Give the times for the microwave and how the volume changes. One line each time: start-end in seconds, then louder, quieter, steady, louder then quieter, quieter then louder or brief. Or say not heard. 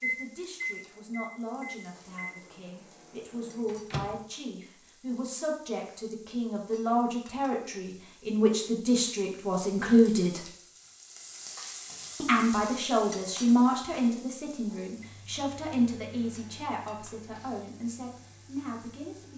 0.0-4.2 quieter
14.9-19.3 quieter.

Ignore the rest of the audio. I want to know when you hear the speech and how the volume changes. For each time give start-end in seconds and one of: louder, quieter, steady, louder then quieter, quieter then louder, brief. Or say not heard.
0.0-10.4 louder
12.2-19.3 quieter.